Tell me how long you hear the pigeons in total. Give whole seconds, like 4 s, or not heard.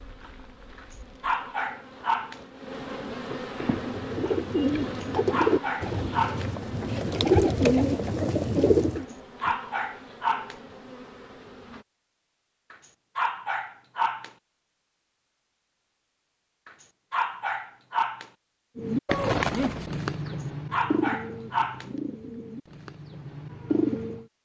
11 s.